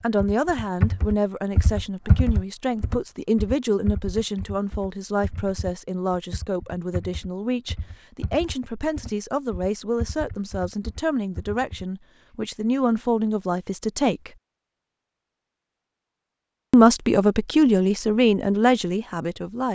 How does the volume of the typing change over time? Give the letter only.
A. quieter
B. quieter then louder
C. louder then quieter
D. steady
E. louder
A.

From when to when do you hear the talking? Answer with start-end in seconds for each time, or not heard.
0.0-14.3, 16.7-19.7.